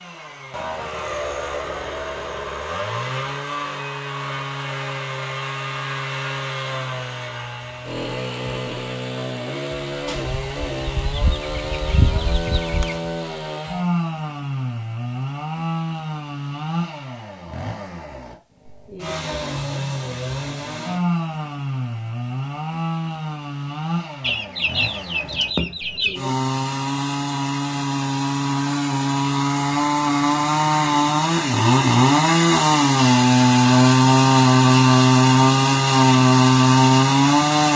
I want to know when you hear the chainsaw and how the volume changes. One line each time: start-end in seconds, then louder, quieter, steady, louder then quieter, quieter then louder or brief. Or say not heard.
0.0-37.7 louder.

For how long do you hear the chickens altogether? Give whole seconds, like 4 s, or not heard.
5 s.